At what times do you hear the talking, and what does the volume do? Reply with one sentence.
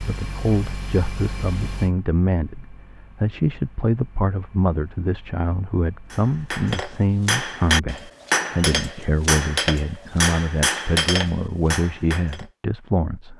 You can hear the talking from 0.0 to 13.3 s, at a steady volume.